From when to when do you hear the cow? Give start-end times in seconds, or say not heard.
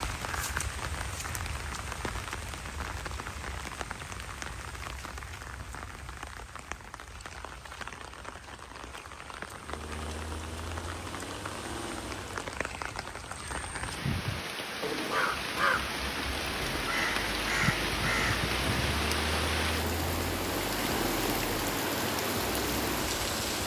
not heard.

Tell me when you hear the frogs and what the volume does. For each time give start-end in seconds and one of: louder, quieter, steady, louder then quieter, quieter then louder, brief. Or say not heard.
not heard.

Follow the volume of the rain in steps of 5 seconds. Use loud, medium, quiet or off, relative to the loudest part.
medium, medium, medium, loud, loud.